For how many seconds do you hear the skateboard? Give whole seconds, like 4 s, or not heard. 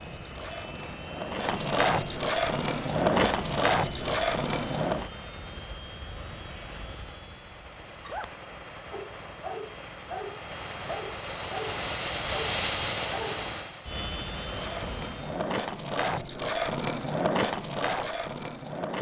10 s.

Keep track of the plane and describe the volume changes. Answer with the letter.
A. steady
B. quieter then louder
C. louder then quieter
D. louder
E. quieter
D.